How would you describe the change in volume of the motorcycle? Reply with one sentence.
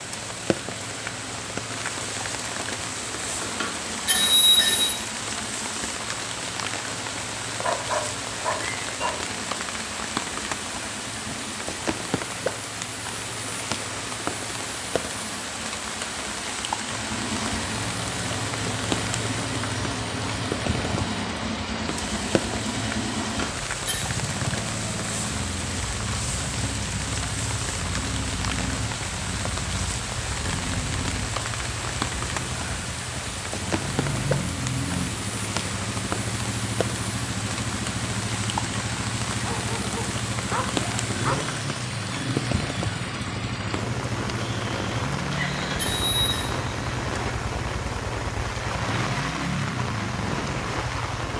The volume of the motorcycle goes up.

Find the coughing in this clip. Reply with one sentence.
You can't hear the coughing here.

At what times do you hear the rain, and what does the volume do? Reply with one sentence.
The rain can be heard from 0.0 to 51.3 s, at a steady volume.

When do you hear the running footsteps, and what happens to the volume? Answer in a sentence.
The running footsteps can't be heard in this clip.